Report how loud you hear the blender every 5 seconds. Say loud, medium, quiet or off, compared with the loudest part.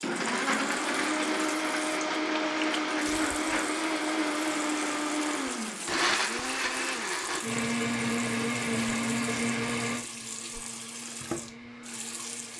loud, loud, quiet.